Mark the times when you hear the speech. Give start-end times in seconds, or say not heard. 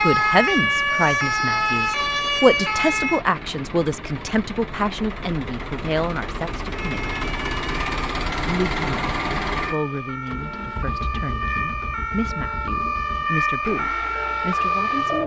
0.0-7.2, 8.4-15.2.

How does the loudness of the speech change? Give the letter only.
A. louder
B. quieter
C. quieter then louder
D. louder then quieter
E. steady
B.